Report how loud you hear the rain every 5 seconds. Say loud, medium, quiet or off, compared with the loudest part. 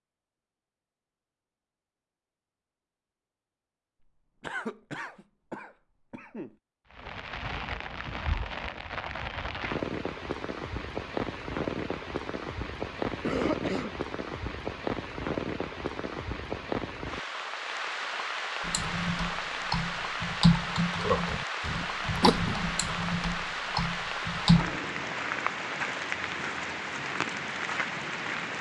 off, loud, loud, loud, loud, loud.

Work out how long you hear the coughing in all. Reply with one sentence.
You can hear the coughing for 4 seconds altogether.